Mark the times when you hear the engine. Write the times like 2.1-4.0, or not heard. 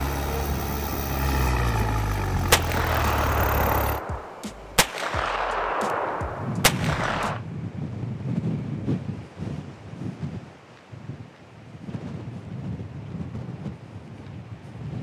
0.0-4.0.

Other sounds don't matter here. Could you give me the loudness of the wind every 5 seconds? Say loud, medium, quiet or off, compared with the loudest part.
medium, loud, medium.